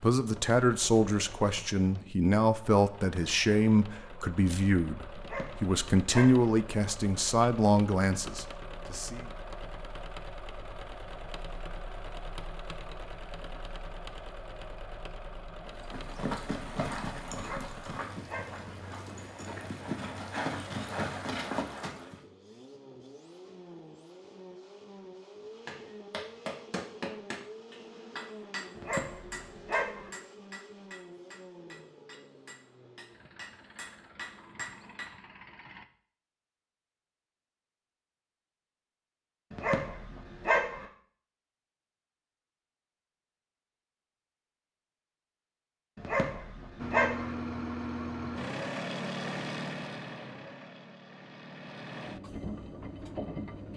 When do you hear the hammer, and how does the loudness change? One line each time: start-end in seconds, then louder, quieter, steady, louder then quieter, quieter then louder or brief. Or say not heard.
25.6-35.1 quieter then louder.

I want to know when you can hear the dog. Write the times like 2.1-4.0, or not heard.
5.2-6.5, 17.4-18.7, 28.8-30.1, 39.5-40.9, 46.0-47.4.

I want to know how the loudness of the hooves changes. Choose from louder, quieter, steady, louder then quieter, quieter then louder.
quieter then louder.